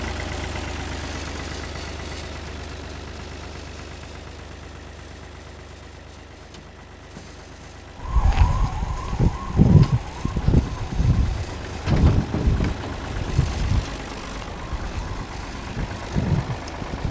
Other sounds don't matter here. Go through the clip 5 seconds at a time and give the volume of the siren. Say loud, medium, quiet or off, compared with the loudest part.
off, loud, medium, medium.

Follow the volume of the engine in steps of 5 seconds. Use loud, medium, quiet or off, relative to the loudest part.
loud, medium, loud, loud.